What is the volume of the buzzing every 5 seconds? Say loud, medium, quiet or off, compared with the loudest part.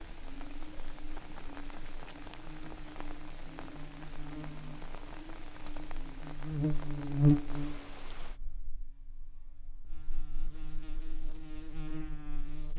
quiet, loud, quiet.